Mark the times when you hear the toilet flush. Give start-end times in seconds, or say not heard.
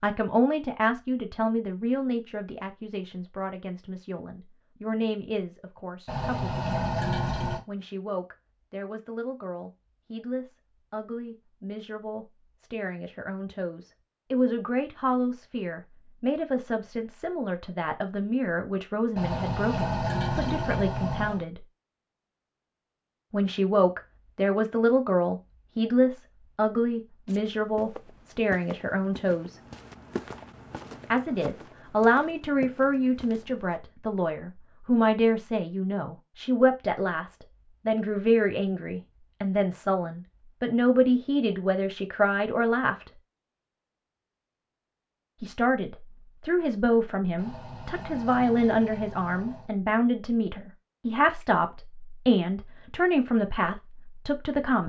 6.0-7.6, 19.1-21.4, 47.4-49.7.